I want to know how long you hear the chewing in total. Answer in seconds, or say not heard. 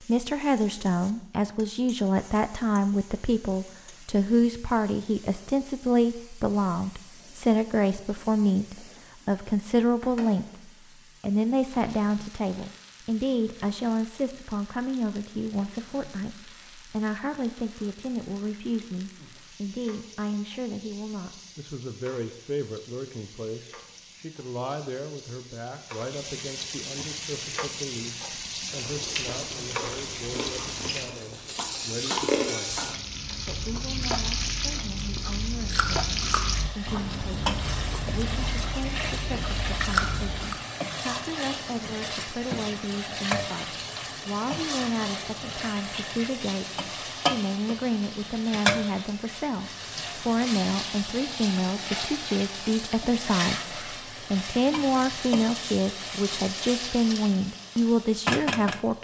12 s.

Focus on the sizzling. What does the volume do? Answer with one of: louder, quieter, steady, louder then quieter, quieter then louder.
louder.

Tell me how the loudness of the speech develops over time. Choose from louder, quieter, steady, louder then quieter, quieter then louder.
quieter then louder.